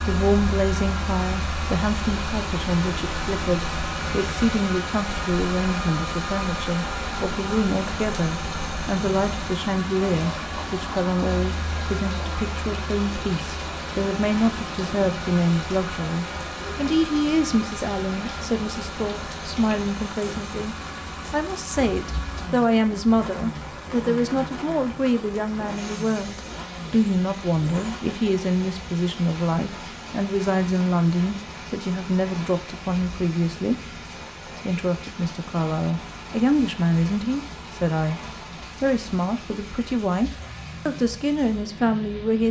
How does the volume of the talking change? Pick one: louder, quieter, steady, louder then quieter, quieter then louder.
steady.